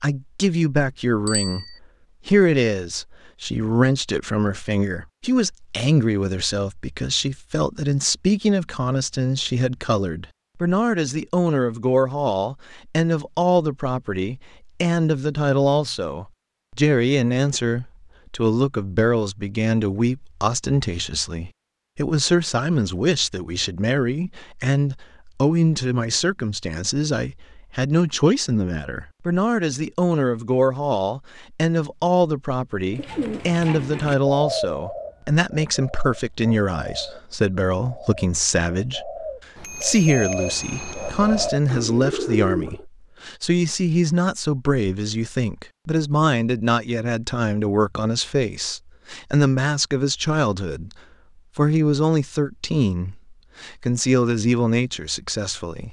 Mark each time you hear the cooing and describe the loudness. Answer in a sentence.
You can hear the cooing from 32.9 to 42.9 s, getting quieter then louder.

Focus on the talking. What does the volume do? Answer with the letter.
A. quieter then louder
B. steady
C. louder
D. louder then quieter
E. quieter
B.